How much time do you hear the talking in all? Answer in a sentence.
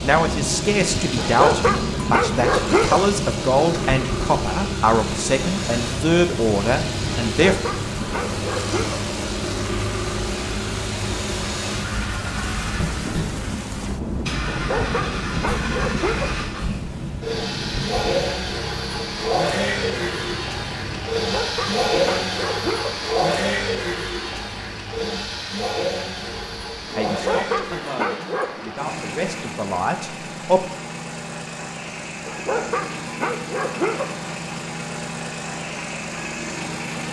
You can hear the talking for 11 seconds altogether.